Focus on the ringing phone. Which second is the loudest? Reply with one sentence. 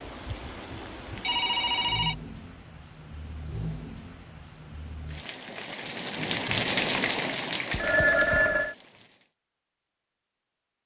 The volume of the ringing phone peaks at 8 seconds.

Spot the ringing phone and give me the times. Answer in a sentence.
You can hear the ringing phone from 1.2 to 2.1 s and from 7.7 to 8.8 s.